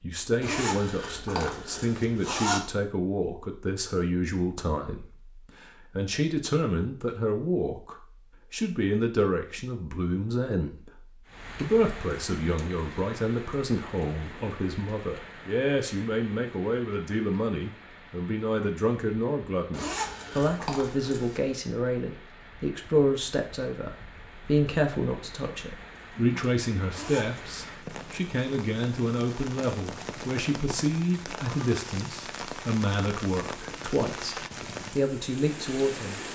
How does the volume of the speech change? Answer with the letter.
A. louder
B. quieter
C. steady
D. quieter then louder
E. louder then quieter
C.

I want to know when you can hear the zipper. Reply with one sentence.
The zipper can be heard from 0.4 to 2.6 s, from 19.7 to 21.5 s and from 26.9 to 27.6 s.